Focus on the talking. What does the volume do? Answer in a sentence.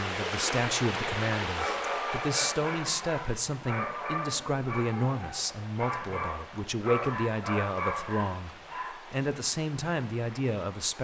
The volume of the talking stays about the same.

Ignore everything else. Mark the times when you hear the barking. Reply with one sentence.
You can hear the barking from 1.4 to 8.9 s.